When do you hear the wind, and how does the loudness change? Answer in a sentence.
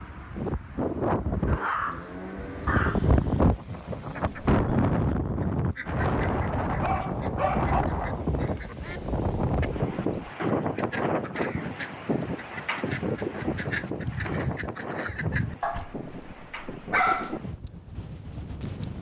You can hear the wind from 0.0 to 18.9 s, getting quieter.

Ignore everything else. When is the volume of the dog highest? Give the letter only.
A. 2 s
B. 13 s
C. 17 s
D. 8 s
C.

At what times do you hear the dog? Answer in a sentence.
You can hear the dog from 1.4 to 3.1 s, from 6.8 to 7.8 s and from 15.6 to 17.4 s.